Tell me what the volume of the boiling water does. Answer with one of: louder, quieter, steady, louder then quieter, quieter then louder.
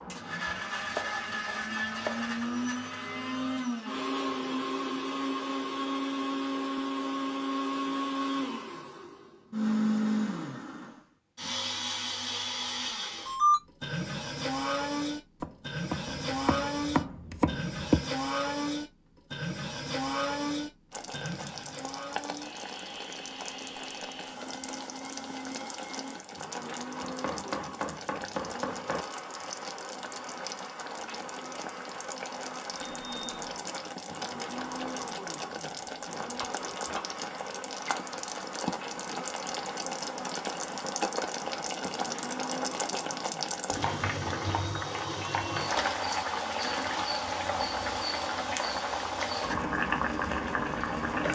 louder.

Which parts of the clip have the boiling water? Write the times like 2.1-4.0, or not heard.
20.9-51.3.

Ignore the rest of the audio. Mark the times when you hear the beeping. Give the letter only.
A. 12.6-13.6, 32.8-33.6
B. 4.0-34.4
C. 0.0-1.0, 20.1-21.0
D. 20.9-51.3
A.